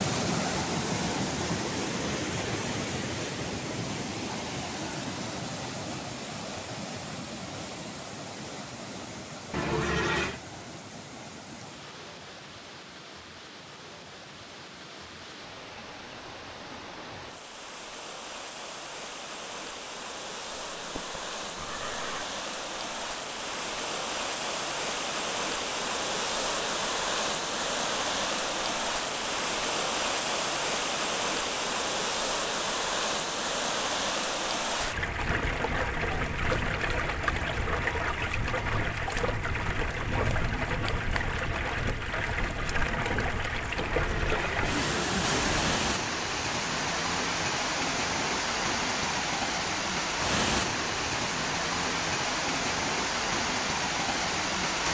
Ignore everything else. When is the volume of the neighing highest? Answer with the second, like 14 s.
10 s.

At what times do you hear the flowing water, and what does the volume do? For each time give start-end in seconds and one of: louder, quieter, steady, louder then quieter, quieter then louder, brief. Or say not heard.
0.0-54.8 quieter then louder.